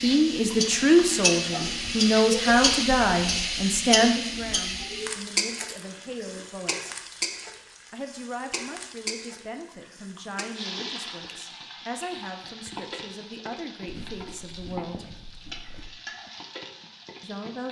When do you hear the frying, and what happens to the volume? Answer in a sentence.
You can hear the frying from 0.0 to 17.6 s, getting quieter.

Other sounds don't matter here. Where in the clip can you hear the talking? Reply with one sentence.
You can hear the talking from 0.0 to 7.0 s, from 7.9 to 15.2 s and from 17.2 to 17.6 s.